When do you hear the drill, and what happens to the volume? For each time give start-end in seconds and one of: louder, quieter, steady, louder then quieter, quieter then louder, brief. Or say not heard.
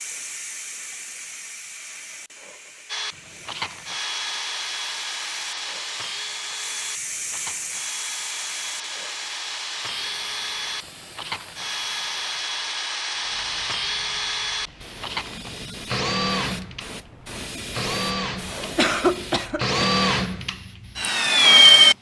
2.9-21.9 louder.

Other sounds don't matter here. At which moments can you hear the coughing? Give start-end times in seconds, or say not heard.
18.8-19.9.